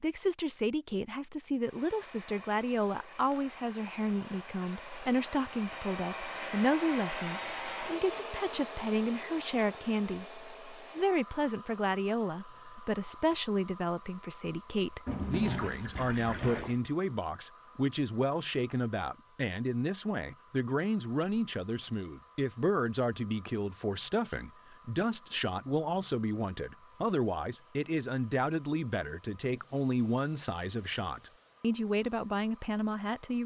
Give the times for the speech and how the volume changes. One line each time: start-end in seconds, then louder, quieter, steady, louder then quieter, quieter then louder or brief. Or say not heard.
0.0-33.4 steady.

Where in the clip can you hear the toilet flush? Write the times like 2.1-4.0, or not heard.
15.1-16.8.